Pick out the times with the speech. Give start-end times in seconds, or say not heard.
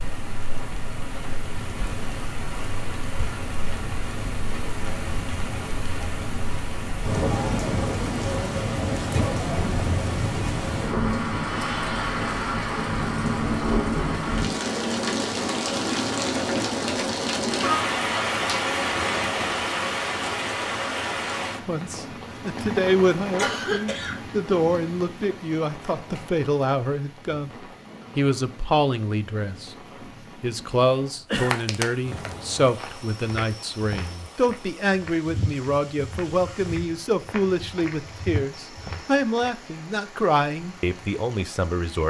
21.6-27.5, 28.1-29.8, 30.4-42.0.